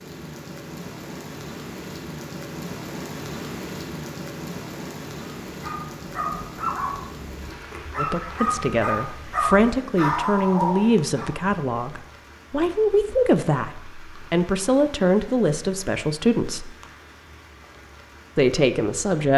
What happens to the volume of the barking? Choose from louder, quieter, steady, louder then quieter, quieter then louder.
quieter then louder.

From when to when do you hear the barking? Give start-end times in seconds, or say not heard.
5.5-11.3.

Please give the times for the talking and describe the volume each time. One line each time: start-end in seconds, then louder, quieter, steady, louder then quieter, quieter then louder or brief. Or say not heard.
8.0-16.8 steady
18.4-19.3 brief.